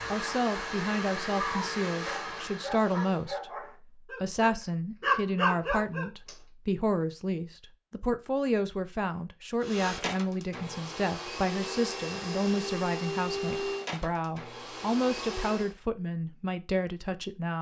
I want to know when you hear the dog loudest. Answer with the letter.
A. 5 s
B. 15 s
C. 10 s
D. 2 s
A.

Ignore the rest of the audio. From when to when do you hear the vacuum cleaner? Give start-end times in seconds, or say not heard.
0.0-3.3, 9.6-15.8.